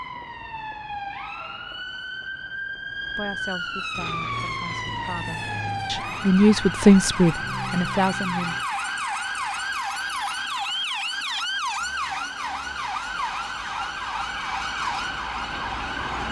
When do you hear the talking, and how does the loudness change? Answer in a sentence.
The talking can be heard from 3.1 to 8.6 s, getting louder then quieter.